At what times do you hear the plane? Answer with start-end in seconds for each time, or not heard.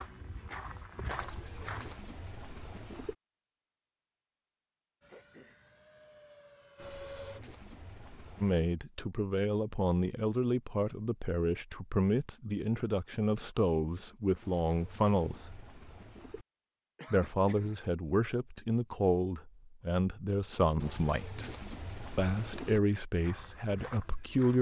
5.0-7.4.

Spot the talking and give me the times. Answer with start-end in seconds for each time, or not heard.
8.4-15.6, 17.1-21.5, 22.1-24.5.